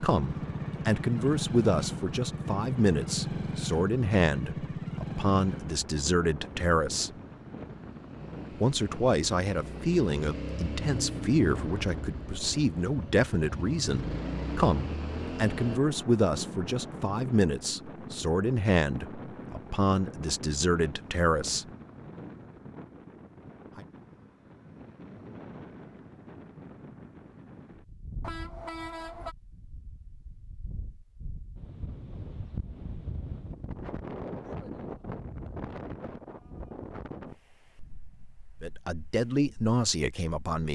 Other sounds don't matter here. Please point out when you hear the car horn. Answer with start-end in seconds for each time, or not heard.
28.2-29.4.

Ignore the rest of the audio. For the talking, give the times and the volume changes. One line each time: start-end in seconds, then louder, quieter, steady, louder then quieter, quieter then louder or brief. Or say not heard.
0.0-7.1 steady
8.6-21.6 steady
38.6-40.7 brief.